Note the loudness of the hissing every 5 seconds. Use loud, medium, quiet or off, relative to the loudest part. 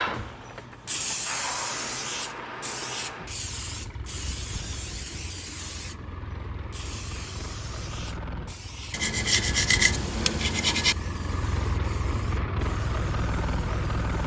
loud, medium, quiet.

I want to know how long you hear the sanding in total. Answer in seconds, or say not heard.
2 s.